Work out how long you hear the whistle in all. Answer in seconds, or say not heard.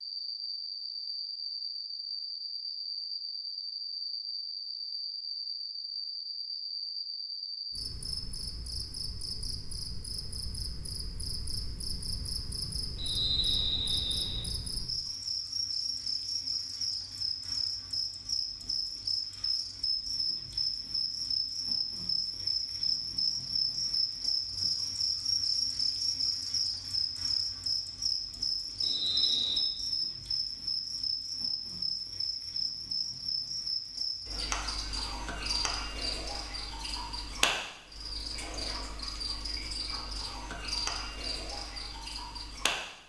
2 s.